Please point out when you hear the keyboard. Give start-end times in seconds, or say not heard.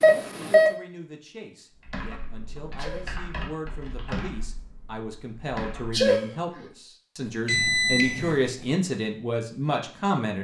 1.8-6.0.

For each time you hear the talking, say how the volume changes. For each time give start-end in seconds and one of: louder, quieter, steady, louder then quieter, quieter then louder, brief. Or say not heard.
0.0-10.4 louder.